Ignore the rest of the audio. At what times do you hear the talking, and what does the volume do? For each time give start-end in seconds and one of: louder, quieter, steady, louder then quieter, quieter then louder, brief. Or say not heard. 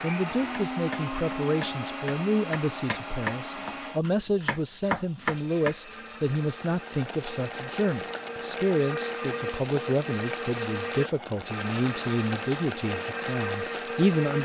0.0-14.3 steady.